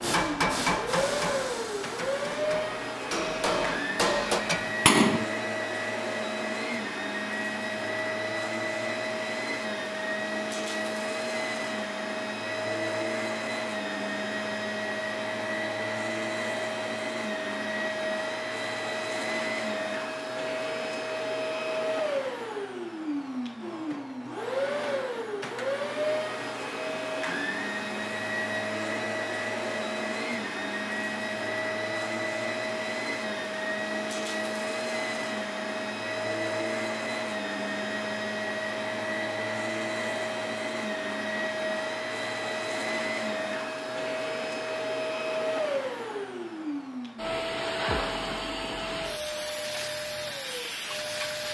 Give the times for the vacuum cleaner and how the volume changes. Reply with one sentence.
The vacuum cleaner can be heard from 0.0 to 51.4 s, at a steady volume.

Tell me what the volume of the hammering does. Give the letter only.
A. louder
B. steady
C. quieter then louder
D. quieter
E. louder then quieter
C.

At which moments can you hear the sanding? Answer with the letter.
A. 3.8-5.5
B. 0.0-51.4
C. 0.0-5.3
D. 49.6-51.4
D.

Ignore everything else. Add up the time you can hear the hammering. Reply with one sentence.
You can hear the hammering for 5 seconds altogether.